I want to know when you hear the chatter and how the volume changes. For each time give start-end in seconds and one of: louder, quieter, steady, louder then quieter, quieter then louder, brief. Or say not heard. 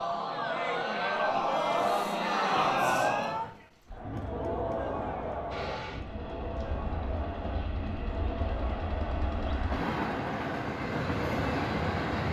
0.0-12.2 quieter.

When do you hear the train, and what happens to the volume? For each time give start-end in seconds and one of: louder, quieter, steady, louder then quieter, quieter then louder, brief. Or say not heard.
5.5-12.2 louder.